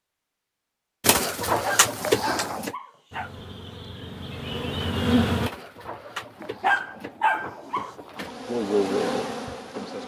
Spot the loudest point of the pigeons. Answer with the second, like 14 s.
2 s.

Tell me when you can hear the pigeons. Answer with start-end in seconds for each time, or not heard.
1.0-2.8, 5.4-8.3.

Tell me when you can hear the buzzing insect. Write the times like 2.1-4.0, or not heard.
3.1-5.5, 8.2-10.0.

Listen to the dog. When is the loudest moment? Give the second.
7 s.